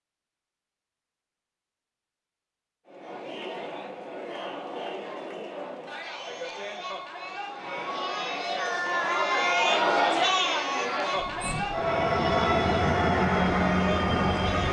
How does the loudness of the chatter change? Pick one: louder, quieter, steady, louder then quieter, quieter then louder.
louder then quieter.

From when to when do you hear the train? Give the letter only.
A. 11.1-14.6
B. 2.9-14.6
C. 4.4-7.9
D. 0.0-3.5
A.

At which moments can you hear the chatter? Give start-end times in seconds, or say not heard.
2.9-14.6.